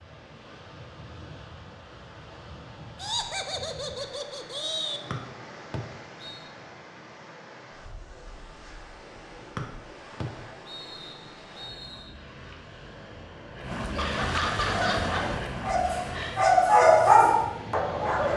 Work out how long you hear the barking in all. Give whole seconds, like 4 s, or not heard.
4 s.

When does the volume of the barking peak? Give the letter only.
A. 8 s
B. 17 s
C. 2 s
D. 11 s
B.